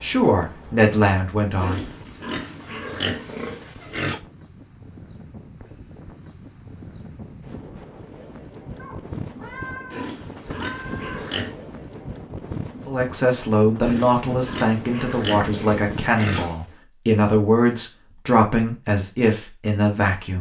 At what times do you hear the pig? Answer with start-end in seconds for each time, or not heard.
1.6-4.2, 9.9-11.6, 13.8-16.6.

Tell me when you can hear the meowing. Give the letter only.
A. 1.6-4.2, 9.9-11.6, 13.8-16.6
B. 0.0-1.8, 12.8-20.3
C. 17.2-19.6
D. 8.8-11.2
D.